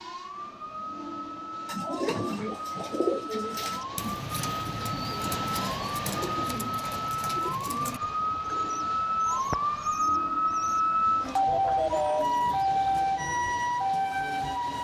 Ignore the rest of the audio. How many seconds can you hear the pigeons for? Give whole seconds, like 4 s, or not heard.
11 s.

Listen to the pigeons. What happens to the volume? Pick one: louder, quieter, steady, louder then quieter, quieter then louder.
quieter.